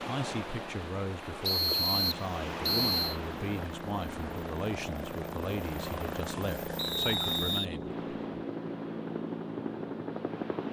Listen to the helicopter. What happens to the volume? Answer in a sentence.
The loudness of the helicopter goes up.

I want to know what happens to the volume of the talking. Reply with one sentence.
The volume of the talking stays about the same.